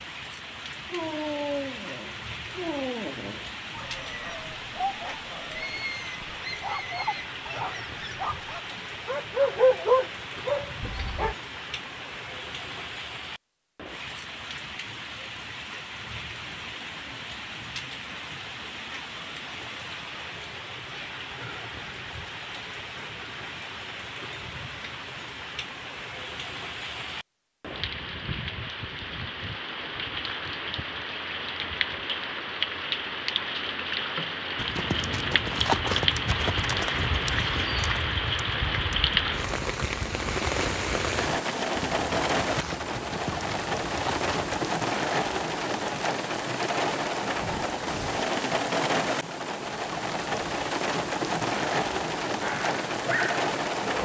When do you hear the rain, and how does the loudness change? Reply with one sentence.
You can hear the rain from 0.0 to 54.0 s, getting louder.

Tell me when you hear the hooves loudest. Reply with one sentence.
The volume of the hooves peaks at 36 seconds.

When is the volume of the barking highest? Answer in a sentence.
The loudest moment of the barking is at 10 seconds.